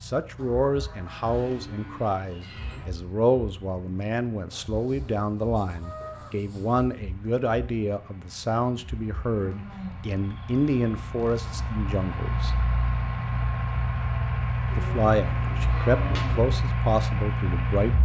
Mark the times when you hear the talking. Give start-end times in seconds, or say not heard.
0.0-12.6, 14.8-17.9.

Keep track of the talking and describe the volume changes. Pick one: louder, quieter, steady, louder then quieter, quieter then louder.
steady.